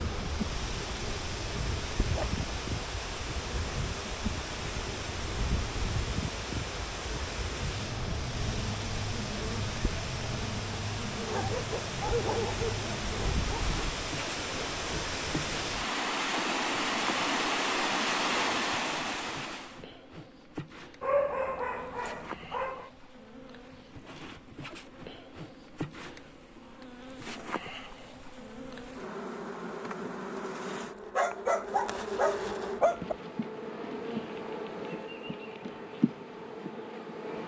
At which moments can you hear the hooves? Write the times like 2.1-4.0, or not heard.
not heard.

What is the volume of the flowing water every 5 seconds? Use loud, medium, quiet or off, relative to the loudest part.
medium, medium, medium, loud, off, off, off, off.